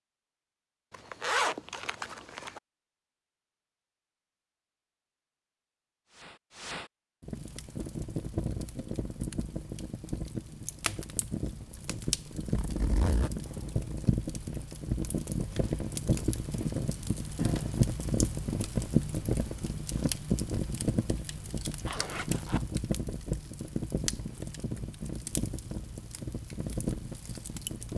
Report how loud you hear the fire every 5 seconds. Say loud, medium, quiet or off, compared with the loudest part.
off, medium, medium, loud, loud, medium.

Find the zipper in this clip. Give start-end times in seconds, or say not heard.
0.9-2.6, 12.4-13.3, 21.9-22.6.